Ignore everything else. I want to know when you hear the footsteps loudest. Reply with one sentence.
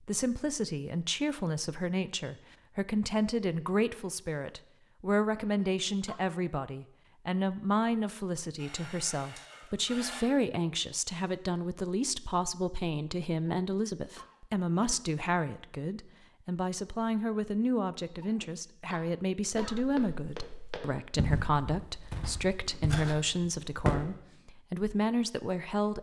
The volume of the footsteps peaks at 24 seconds.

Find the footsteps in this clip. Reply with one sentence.
The footsteps can be heard from 19.5 to 24.0 s.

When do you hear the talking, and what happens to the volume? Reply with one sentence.
The talking can be heard from 0.0 to 25.9 s, at a steady volume.